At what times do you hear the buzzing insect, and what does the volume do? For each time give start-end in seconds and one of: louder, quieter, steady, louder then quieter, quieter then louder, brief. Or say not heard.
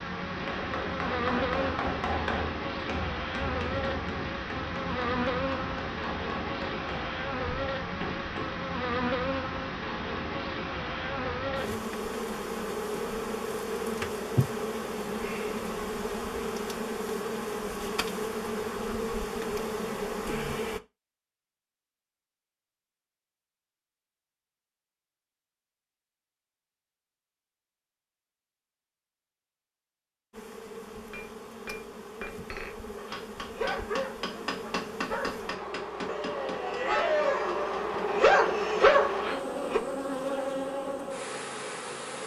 0.0-20.8 steady
30.3-42.2 louder.